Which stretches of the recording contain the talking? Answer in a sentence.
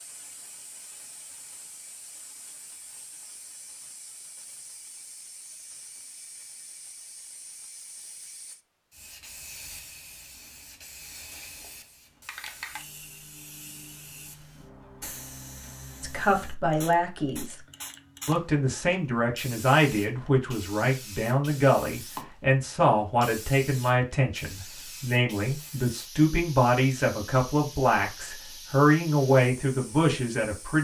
You can hear the talking from 16.0 to 17.6 s and from 18.2 to 30.8 s.